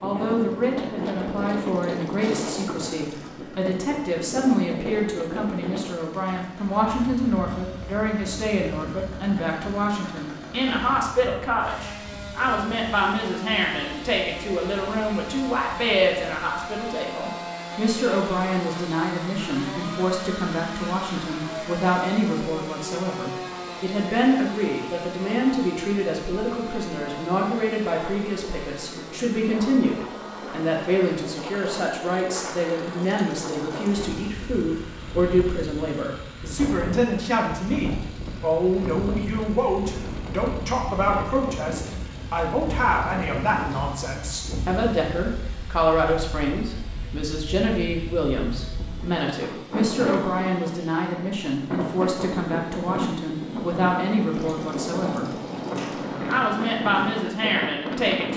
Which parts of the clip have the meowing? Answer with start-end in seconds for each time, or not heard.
not heard.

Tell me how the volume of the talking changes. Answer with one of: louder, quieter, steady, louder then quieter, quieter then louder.
steady.